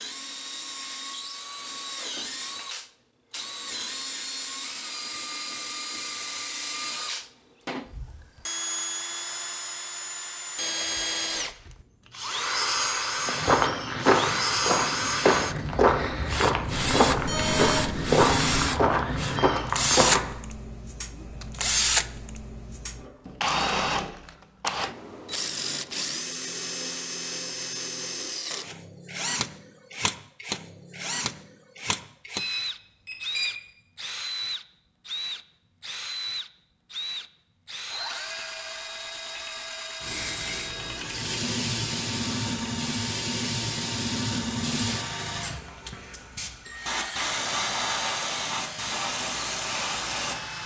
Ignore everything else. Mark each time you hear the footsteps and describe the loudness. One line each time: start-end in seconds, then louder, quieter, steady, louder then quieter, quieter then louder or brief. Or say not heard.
13.2-20.3 steady.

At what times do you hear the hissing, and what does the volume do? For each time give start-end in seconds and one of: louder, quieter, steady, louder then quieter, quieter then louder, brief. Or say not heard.
40.0-50.6 steady.